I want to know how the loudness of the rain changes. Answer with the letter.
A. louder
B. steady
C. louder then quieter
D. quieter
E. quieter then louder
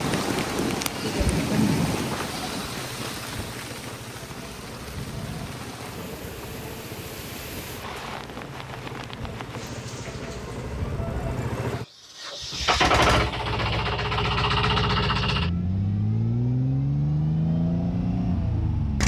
D.